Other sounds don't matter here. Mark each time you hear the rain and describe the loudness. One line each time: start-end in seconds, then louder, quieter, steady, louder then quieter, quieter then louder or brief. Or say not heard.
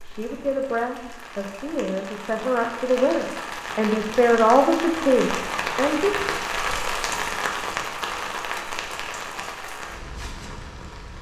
0.0-11.1 louder then quieter.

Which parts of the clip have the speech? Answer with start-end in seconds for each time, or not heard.
0.0-6.1.